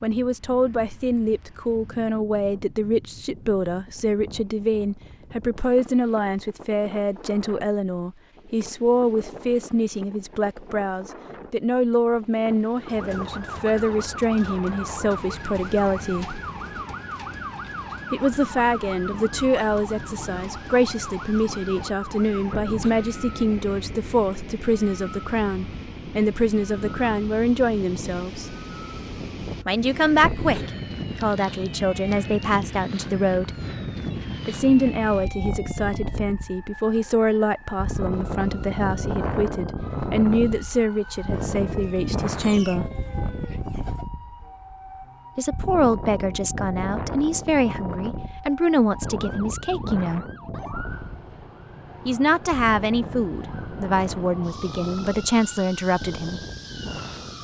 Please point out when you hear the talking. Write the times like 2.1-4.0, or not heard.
0.0-16.4, 18.1-28.6, 29.6-33.5, 34.5-42.9, 45.4-50.2, 52.0-56.4.